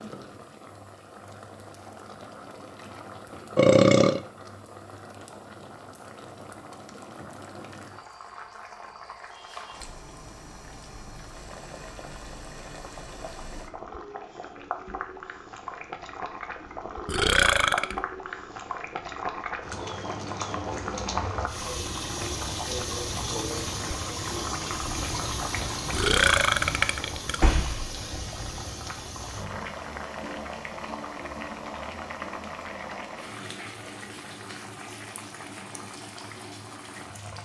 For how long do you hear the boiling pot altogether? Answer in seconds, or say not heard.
37 s.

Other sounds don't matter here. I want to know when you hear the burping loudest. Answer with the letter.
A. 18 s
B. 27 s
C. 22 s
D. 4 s
D.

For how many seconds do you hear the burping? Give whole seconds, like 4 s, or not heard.
3 s.